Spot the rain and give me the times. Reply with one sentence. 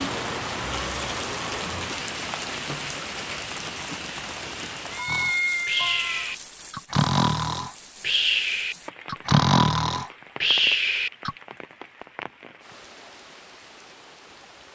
You can hear the rain from 0.0 to 14.7 s.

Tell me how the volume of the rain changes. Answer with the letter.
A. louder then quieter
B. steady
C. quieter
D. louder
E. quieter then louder
C.